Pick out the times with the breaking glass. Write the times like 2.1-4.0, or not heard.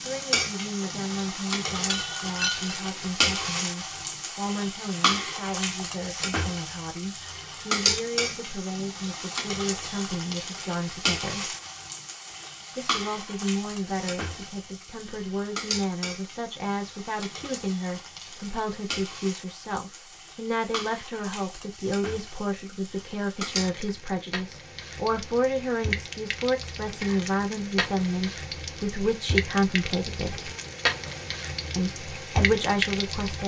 1.9-2.8.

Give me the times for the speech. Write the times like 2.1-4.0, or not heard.
0.0-11.6, 12.8-30.5, 31.8-33.4.